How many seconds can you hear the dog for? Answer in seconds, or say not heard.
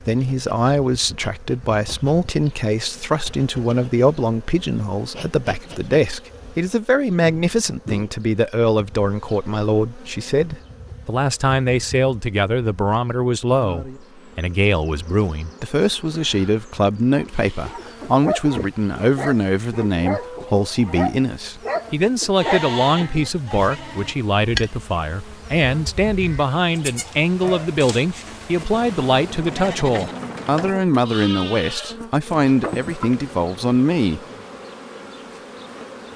7 s.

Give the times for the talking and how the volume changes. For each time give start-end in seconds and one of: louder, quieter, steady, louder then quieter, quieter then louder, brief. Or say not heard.
0.1-34.2 steady.